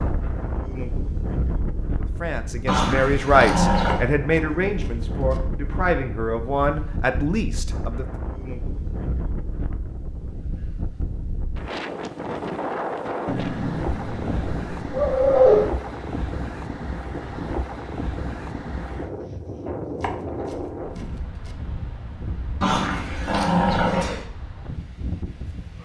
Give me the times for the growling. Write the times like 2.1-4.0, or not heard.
2.6-4.0, 13.2-15.7, 22.6-24.2.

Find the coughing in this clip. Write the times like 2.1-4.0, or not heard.
not heard.